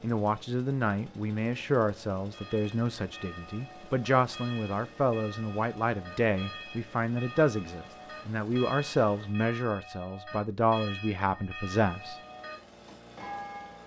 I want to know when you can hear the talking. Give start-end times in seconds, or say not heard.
0.0-12.2.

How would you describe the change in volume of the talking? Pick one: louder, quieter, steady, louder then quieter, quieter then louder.
steady.